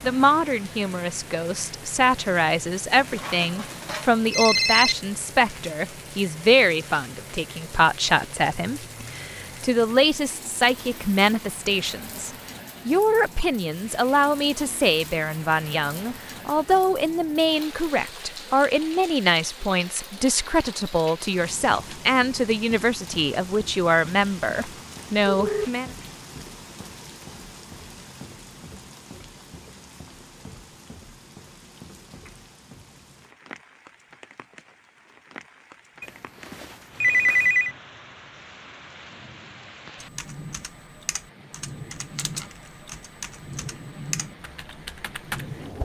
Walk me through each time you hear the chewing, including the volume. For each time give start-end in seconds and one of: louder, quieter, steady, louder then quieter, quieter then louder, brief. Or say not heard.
not heard.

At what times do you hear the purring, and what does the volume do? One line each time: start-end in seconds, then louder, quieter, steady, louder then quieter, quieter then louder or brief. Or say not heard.
not heard.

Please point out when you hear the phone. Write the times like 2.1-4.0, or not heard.
3.0-5.0, 24.2-25.7, 36.0-37.8.